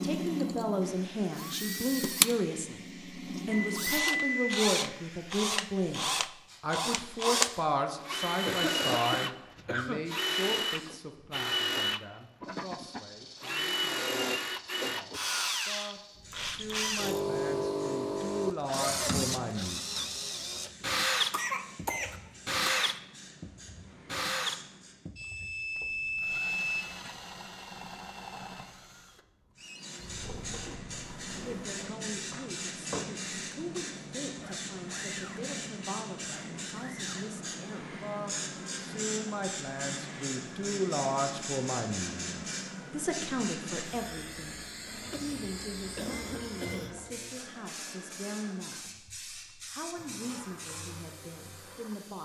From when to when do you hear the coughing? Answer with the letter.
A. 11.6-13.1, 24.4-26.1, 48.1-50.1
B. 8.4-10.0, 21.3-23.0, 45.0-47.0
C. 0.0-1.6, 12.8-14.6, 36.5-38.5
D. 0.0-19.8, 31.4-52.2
B.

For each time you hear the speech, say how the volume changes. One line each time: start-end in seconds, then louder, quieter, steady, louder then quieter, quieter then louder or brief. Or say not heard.
0.0-19.8 quieter then louder
31.4-52.2 louder then quieter.